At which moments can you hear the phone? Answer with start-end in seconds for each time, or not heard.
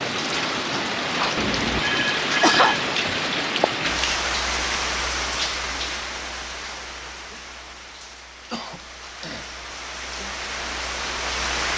1.4-2.8.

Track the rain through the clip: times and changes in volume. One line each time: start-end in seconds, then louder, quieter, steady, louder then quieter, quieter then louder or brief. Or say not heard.
0.0-11.7 quieter then louder.